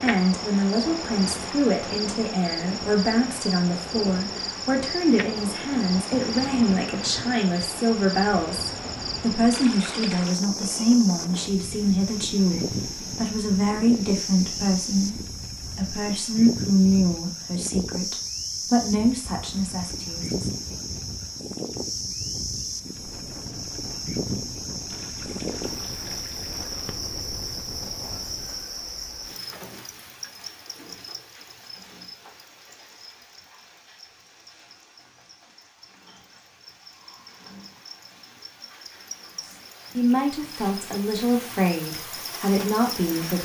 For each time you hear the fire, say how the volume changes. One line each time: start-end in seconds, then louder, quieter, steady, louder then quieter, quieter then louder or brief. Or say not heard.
not heard.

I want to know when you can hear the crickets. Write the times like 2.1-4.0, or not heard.
0.0-43.3.